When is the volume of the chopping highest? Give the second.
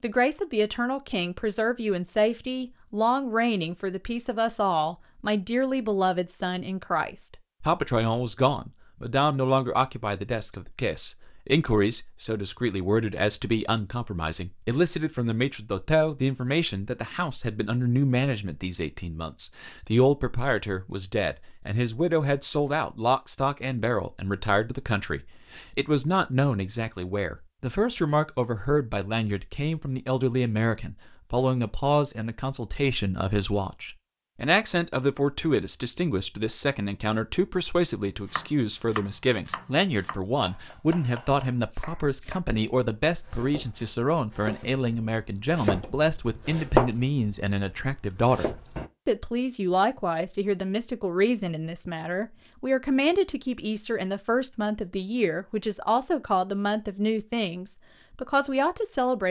47 s.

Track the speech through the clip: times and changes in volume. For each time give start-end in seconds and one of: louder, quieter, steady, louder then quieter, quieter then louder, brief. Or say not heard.
0.0-59.2 steady.